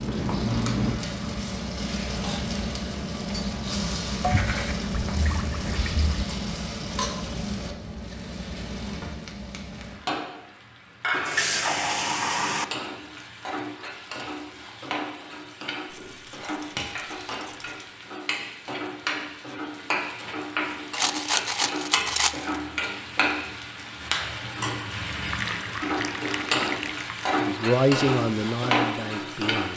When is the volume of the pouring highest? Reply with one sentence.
The loudest moment of the pouring is at 12 seconds.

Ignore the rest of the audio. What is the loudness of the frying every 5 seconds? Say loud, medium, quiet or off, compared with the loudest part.
loud, medium, medium, medium, loud, loud.